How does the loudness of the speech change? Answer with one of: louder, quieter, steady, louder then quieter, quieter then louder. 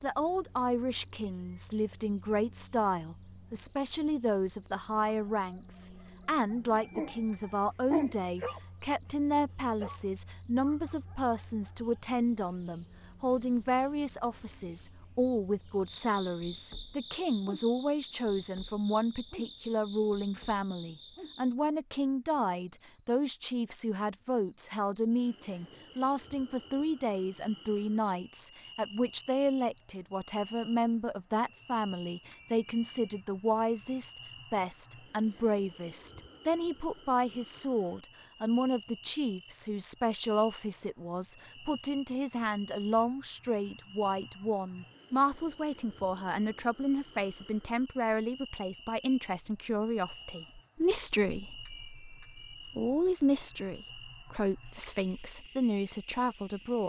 steady.